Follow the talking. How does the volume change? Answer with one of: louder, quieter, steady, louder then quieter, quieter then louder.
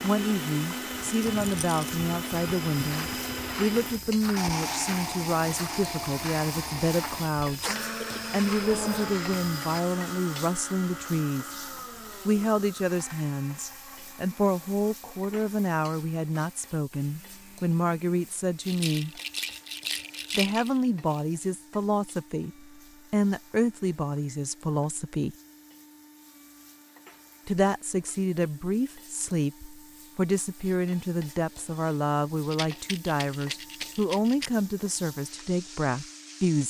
steady.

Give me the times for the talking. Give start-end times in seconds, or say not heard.
0.0-11.5, 12.2-19.1, 20.4-25.4, 27.4-36.6.